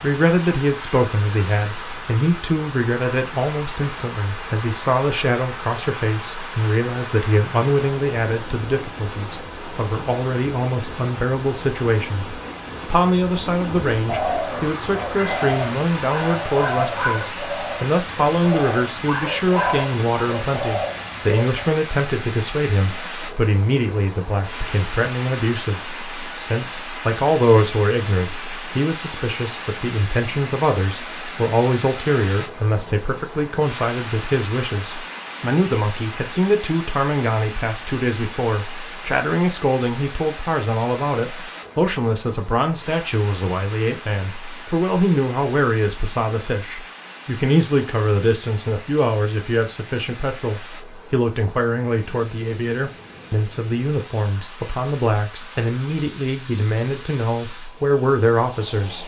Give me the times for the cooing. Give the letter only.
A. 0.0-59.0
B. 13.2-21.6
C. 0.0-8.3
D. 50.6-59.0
B.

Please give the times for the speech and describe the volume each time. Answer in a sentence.
You can hear the speech from 0.0 to 59.0 s, at a steady volume.